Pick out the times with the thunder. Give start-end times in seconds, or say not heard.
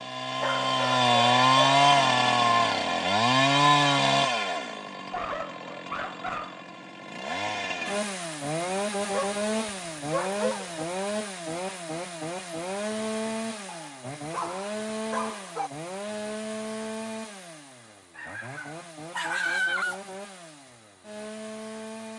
not heard.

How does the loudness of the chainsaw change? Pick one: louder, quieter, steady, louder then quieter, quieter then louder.
quieter.